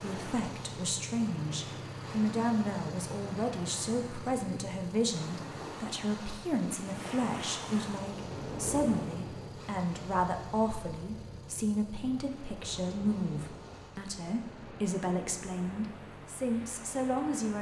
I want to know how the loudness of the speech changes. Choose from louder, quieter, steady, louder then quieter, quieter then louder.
steady.